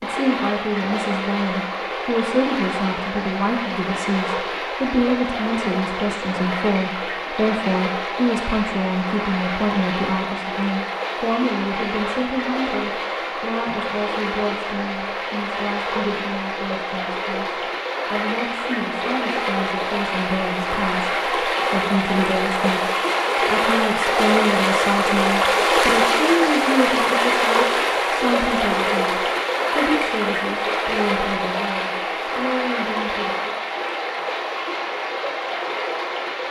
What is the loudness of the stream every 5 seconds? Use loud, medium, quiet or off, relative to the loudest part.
medium, medium, medium, medium, loud, loud, medium, medium.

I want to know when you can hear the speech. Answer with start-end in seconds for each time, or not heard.
0.0-33.5.